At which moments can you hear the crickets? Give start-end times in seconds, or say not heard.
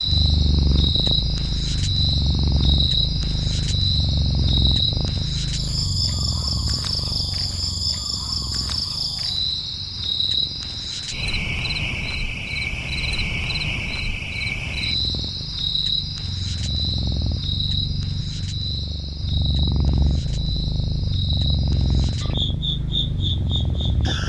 0.0-24.2.